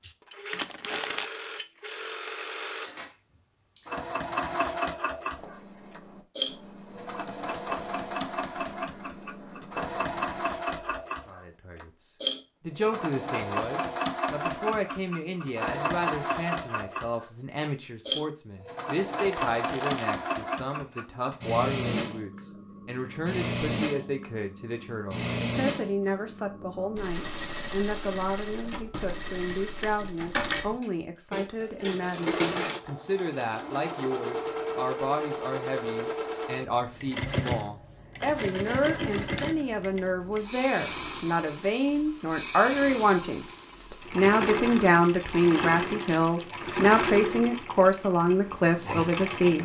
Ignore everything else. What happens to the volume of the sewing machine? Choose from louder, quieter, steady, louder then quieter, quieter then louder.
steady.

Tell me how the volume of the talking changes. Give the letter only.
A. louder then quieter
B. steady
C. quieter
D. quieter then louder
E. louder
E.